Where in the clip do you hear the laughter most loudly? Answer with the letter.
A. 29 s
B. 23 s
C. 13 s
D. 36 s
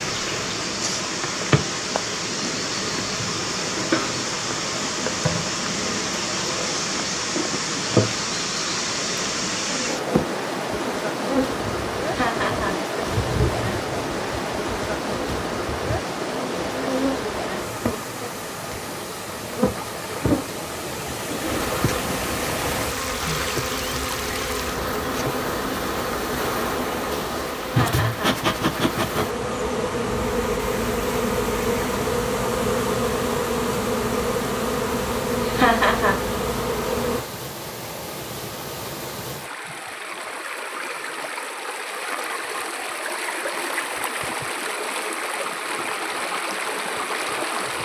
D.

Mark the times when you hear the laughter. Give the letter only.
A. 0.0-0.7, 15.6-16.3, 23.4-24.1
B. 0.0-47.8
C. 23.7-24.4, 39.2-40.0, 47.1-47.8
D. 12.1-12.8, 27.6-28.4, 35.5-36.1
D.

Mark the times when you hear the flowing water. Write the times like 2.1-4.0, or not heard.
0.0-47.8.